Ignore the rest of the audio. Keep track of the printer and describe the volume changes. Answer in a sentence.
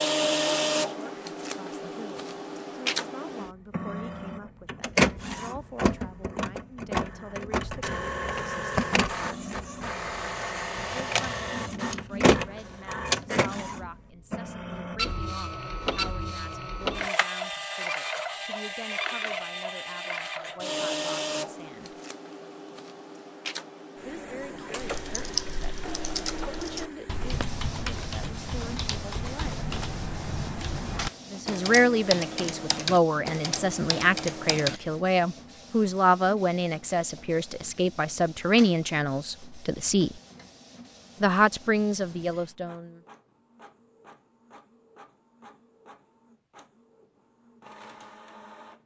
The loudness of the printer goes down.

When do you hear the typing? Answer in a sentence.
You can hear the typing from 24.8 to 34.8 s.